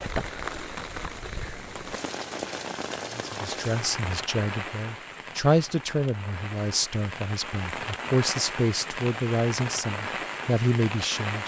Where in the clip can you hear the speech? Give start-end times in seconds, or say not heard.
3.1-11.4.